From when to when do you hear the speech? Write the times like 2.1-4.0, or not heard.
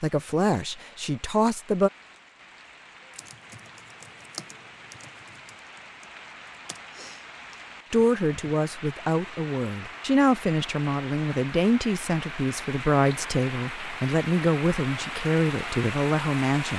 0.0-1.9, 7.9-16.7.